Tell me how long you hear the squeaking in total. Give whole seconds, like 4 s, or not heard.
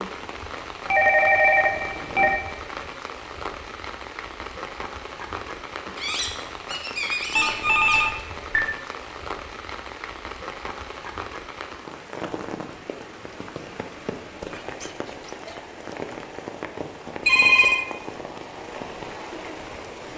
2 s.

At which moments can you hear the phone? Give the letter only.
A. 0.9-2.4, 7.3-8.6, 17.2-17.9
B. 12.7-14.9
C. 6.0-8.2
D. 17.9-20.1
A.